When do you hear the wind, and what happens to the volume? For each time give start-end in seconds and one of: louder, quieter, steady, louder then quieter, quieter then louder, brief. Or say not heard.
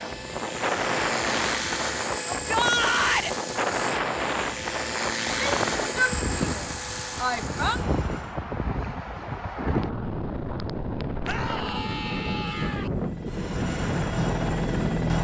0.0-15.1 steady.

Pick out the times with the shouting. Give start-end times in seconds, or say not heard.
2.3-3.4, 5.2-7.8, 11.2-12.9.